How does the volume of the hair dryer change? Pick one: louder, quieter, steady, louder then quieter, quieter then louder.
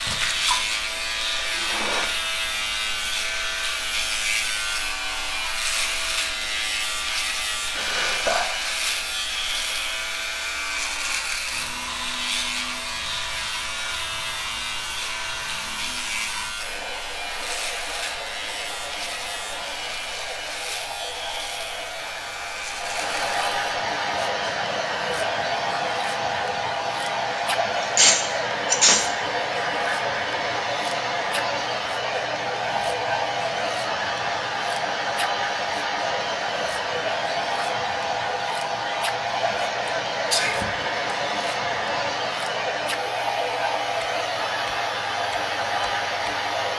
louder.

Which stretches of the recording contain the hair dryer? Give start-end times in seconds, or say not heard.
0.0-46.7.